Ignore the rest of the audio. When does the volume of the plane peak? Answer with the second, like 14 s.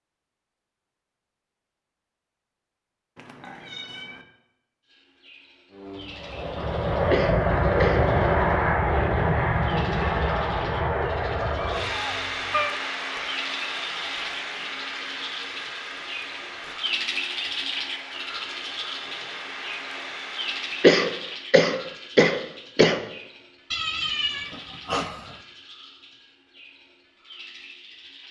8 s.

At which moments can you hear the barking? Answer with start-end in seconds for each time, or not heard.
not heard.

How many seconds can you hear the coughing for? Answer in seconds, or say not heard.
3 s.